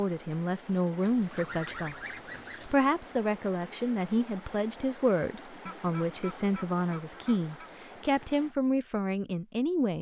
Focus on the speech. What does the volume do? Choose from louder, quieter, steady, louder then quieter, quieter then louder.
steady.